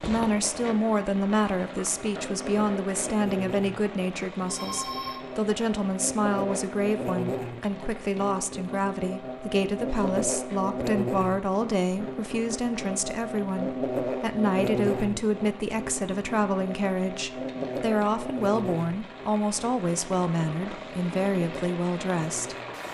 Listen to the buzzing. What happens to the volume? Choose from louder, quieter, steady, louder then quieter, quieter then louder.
louder then quieter.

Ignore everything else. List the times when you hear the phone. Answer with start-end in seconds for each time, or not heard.
4.5-5.2.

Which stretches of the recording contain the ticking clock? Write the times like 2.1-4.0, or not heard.
not heard.